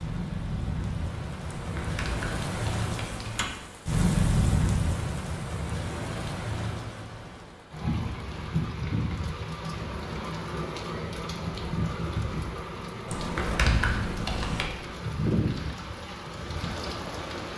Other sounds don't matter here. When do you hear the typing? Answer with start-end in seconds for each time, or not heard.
1.4-3.5, 13.1-14.7.